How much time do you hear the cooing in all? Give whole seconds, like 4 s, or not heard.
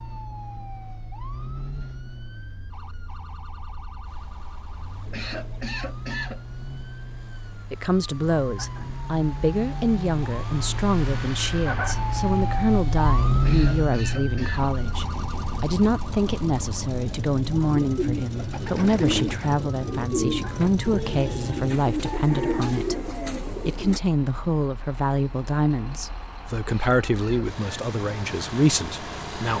6 s.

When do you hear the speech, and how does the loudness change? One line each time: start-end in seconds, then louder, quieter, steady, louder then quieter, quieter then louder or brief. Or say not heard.
7.7-29.5 steady.